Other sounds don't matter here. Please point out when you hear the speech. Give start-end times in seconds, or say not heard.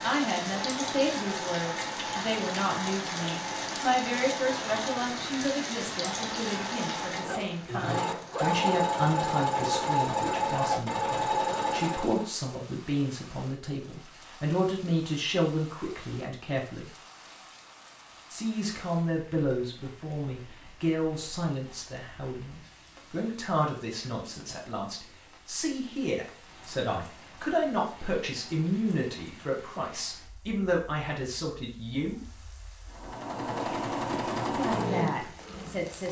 0.0-16.9, 18.3-32.2, 34.5-36.0.